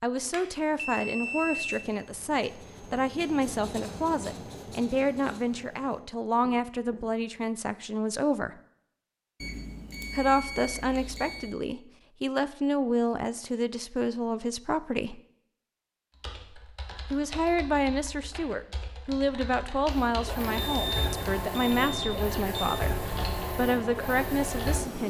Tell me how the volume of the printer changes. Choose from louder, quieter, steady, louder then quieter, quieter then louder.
steady.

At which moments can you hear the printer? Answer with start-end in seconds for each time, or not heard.
19.9-25.0.